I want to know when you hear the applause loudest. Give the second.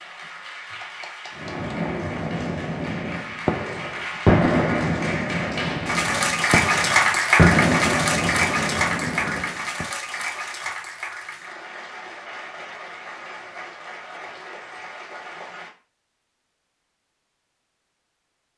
7 s.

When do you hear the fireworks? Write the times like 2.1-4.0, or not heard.
1.4-9.8.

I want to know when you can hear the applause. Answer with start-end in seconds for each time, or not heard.
0.0-15.7.